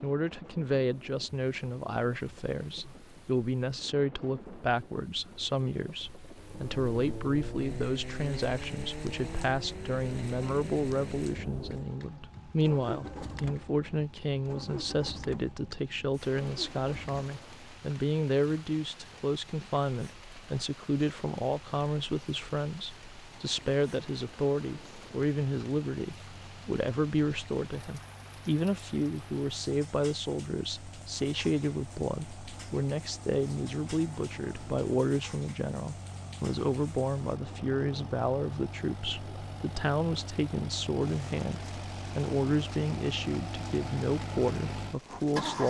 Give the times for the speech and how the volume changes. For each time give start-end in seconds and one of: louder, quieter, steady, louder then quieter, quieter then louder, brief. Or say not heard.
0.0-45.6 steady.